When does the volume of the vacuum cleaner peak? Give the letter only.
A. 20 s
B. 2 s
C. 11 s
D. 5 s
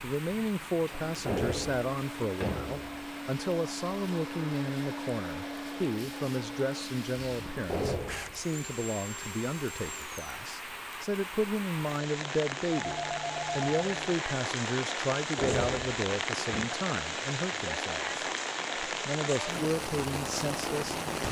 D.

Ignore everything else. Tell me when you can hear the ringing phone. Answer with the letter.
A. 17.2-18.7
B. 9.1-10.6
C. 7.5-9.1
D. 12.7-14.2
D.